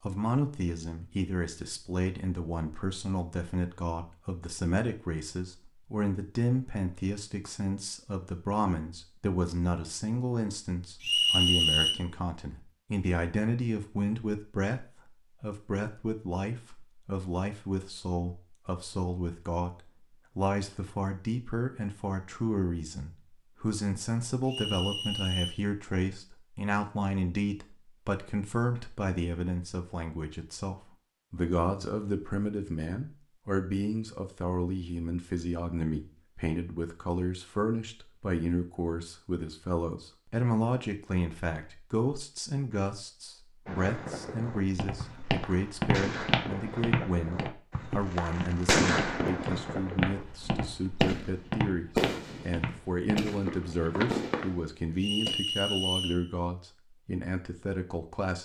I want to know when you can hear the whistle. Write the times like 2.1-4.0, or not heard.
11.0-11.9, 24.4-25.6, 55.0-56.2.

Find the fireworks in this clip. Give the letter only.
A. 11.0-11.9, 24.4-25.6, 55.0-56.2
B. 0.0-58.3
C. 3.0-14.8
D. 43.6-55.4
D.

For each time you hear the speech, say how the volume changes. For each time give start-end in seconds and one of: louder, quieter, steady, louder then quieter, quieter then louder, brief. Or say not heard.
0.0-58.3 steady.